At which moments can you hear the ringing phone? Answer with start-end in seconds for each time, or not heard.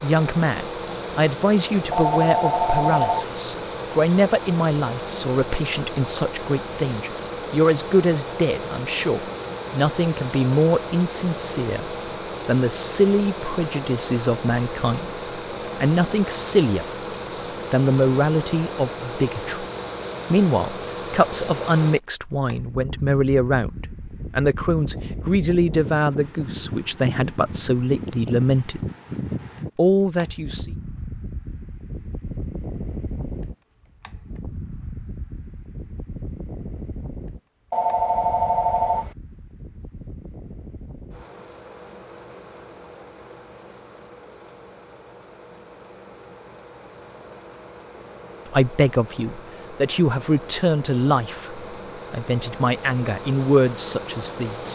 1.9-3.3, 37.7-39.1.